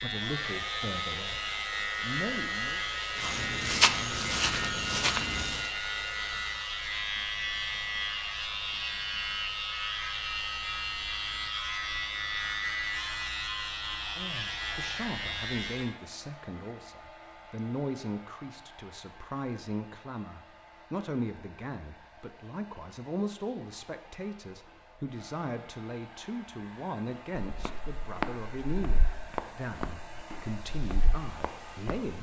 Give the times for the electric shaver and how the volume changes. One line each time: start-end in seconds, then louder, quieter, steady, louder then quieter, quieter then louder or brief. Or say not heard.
0.0-15.9 steady.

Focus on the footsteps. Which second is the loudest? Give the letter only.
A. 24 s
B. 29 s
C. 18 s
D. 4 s
D.